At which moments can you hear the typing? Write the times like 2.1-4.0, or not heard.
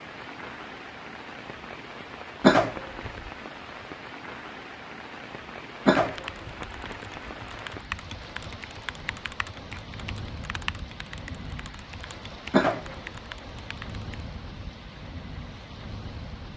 6.0-14.2.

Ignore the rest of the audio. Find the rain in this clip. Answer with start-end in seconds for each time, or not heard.
0.0-16.5.